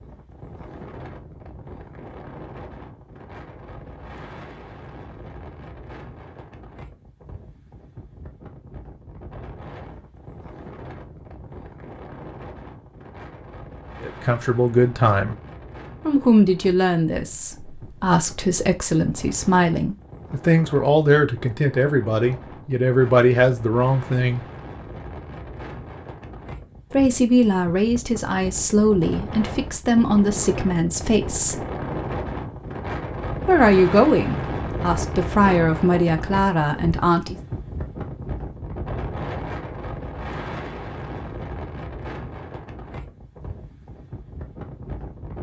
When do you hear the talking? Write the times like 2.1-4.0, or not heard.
14.0-15.3, 16.1-24.4, 26.9-31.6, 33.5-37.4.